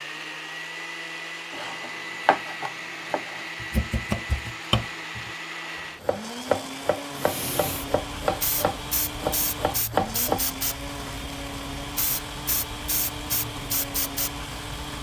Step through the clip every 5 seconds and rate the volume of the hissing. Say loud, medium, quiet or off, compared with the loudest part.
off, loud, loud.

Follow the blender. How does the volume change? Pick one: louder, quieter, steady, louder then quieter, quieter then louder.
steady.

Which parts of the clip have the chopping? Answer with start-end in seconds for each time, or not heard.
1.5-5.3, 6.0-10.4.